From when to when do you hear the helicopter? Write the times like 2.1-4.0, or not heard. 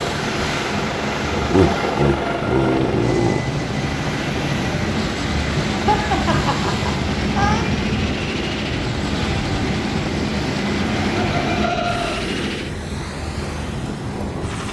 0.0-14.6.